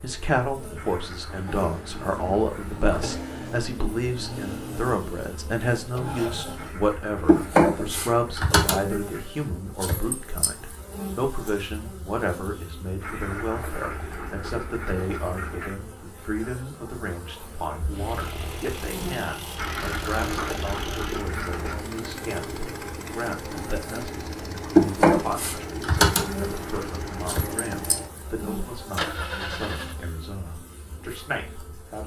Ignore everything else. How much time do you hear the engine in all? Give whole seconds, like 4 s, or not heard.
17 s.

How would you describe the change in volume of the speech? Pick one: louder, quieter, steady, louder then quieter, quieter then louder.
quieter.